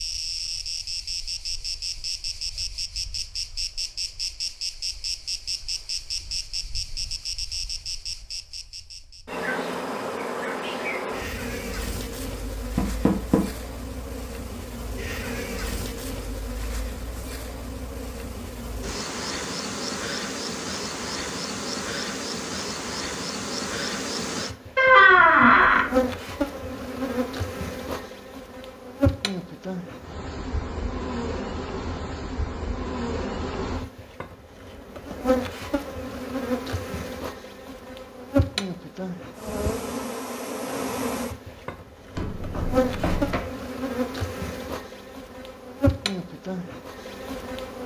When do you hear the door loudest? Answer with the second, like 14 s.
25 s.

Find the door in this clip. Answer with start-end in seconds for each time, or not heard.
12.8-13.4, 24.8-25.9, 42.1-43.4.